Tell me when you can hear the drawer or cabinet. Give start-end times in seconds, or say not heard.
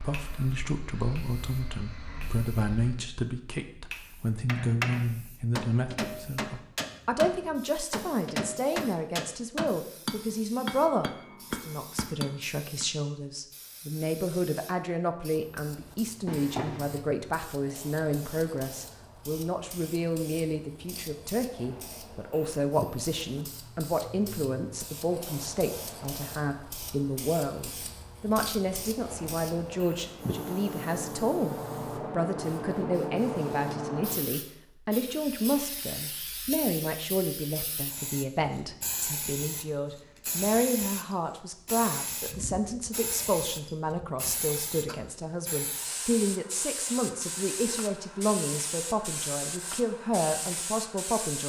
16.2-17.1.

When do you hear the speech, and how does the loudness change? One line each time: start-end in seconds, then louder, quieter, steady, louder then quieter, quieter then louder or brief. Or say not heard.
0.0-51.4 steady.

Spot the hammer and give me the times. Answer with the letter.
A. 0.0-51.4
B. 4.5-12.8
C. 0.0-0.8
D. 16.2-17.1
B.